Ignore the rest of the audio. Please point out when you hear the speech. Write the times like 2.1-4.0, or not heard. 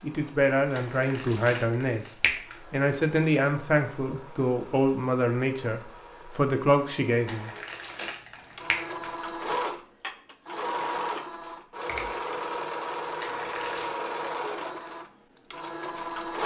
0.0-7.5.